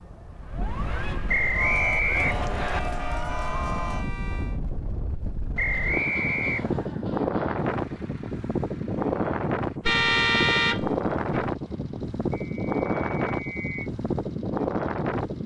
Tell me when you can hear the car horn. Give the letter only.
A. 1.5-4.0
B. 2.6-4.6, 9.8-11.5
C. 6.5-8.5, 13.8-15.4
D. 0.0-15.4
B.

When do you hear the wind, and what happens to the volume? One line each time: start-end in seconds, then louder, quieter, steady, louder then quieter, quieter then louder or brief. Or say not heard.
0.0-15.4 louder.